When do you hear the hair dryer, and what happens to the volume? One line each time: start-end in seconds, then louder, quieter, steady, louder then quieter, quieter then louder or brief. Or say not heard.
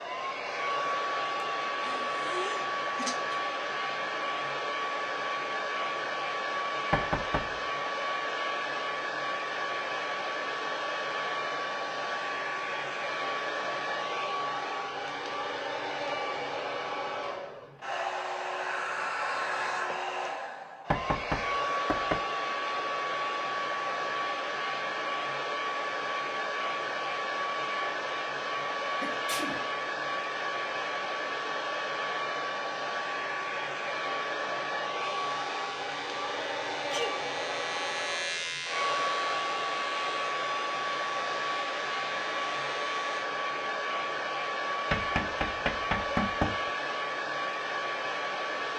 0.0-48.7 steady.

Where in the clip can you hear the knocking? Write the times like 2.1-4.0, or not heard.
6.9-7.5, 20.9-22.2, 44.9-46.7.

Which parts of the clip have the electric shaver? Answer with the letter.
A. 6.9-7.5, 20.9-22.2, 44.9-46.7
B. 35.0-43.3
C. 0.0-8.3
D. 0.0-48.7
B.